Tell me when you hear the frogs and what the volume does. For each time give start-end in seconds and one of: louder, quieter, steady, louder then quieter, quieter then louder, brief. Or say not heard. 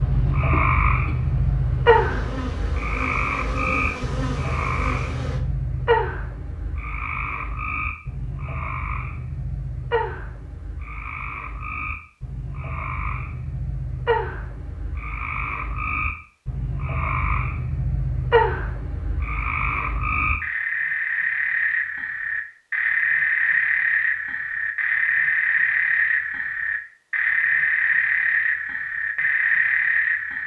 0.0-30.4 quieter then louder.